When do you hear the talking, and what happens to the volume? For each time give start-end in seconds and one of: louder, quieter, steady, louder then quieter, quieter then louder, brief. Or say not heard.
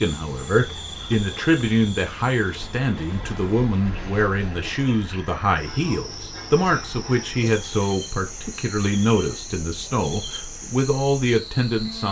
0.0-12.0 steady.